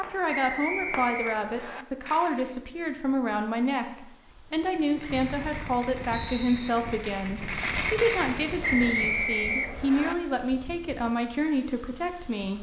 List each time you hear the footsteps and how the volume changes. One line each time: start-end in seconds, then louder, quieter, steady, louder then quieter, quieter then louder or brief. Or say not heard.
not heard.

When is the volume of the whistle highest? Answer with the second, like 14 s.
9 s.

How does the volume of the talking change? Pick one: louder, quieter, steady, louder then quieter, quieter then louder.
steady.